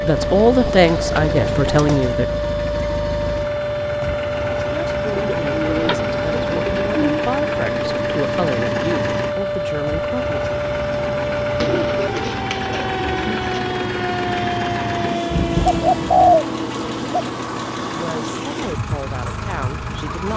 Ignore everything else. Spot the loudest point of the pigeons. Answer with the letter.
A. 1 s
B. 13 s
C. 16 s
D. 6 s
C.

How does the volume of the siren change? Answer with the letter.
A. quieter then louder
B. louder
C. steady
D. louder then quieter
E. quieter
C.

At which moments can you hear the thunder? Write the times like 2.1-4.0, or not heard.
15.3-16.4.